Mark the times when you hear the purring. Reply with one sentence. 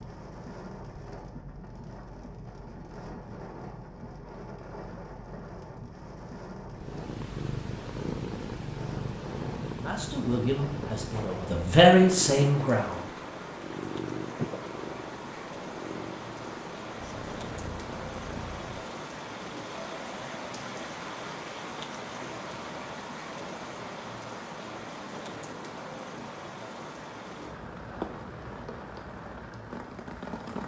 You can hear the purring from 6.7 to 18.9 s.